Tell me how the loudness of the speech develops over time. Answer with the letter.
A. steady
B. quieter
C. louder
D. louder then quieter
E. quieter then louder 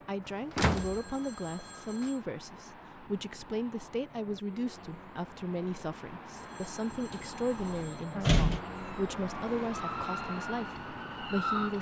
A.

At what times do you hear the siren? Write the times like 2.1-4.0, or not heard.
8.1-11.7.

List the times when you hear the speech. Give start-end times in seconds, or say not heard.
0.1-11.7.